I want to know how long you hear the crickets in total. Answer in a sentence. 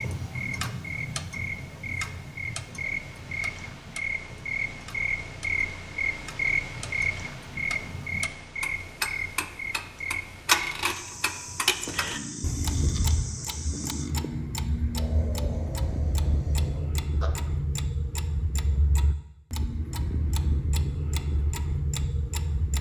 You can hear the crickets for 14 seconds altogether.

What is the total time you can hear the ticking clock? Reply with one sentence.
The ticking clock can be heard for 23 seconds in total.